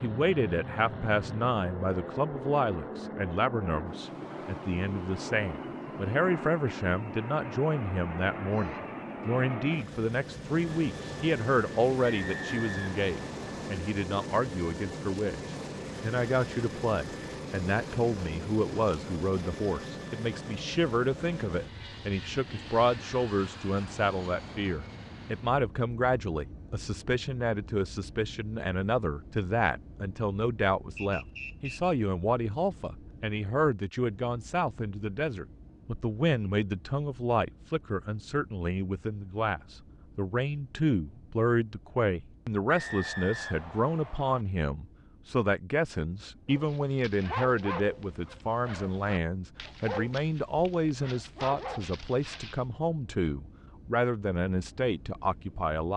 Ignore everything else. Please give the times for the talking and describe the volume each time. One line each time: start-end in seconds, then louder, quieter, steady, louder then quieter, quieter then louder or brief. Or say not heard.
0.0-55.9 steady.